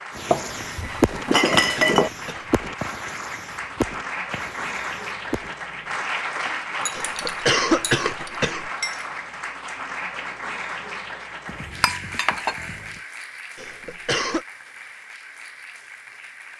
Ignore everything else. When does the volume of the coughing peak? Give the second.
8 s.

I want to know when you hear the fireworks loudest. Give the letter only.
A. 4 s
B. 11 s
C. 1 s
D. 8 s
C.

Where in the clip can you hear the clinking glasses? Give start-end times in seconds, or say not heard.
0.3-2.1, 6.8-9.1, 11.4-13.0.